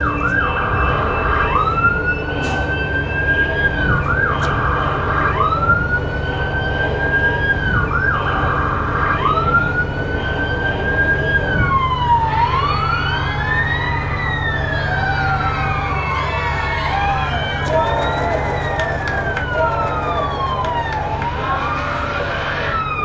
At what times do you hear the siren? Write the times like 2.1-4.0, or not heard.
0.0-23.0.